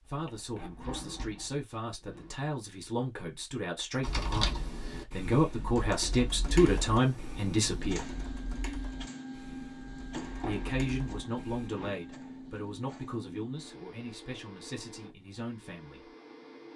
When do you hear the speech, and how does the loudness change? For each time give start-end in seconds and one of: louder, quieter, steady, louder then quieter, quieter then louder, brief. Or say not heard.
0.0-8.1 louder
10.4-16.1 quieter.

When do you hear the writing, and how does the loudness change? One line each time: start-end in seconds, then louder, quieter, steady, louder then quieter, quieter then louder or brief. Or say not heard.
not heard.